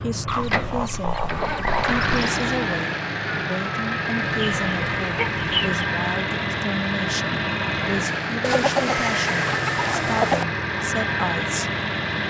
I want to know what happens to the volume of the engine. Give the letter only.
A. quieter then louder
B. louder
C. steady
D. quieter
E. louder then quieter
C.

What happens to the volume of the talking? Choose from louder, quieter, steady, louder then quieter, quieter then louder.
steady.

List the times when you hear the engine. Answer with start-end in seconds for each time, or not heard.
0.0-12.2.